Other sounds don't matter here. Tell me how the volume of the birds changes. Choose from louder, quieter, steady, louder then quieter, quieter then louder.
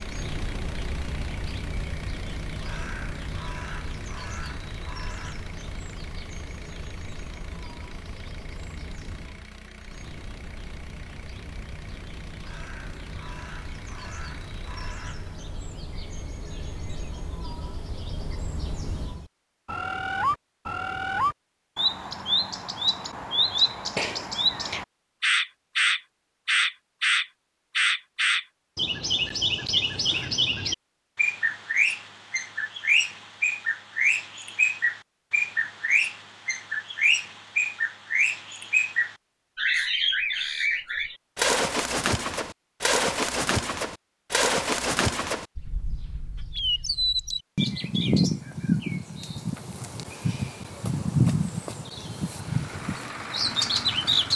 louder.